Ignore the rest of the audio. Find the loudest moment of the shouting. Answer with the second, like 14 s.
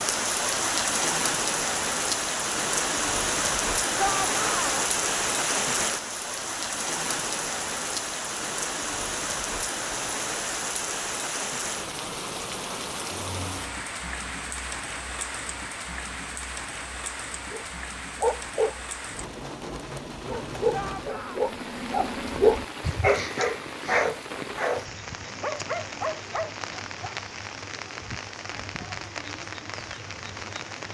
4 s.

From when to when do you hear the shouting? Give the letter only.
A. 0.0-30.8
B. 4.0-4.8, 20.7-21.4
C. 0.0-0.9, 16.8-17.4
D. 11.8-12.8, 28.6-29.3
B.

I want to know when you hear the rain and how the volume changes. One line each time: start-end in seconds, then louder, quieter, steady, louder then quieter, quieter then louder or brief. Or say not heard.
0.0-30.8 quieter.